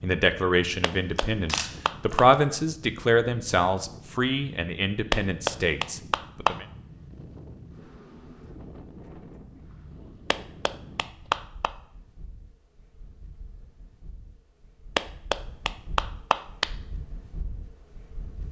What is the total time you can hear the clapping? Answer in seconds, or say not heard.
6 s.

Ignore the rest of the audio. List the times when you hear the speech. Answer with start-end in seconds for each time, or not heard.
0.0-6.7.